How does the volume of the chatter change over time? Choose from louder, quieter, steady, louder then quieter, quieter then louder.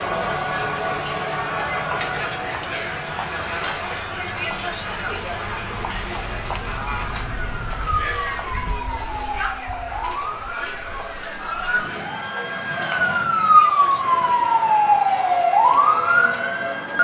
quieter.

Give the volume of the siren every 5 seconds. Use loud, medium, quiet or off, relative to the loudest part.
off, quiet, loud, loud.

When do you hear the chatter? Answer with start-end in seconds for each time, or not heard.
0.0-16.9.